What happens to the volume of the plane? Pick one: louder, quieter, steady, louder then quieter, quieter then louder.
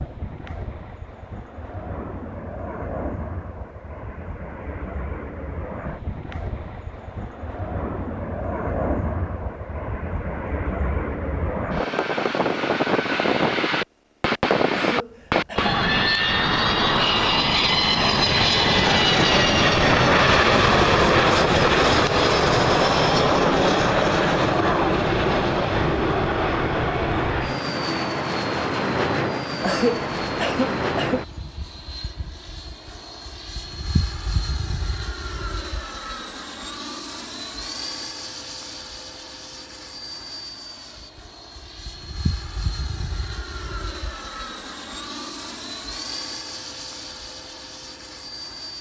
louder then quieter.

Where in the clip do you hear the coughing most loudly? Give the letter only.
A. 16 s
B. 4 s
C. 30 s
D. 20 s
C.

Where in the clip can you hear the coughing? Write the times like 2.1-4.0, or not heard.
14.7-15.7, 29.6-31.2.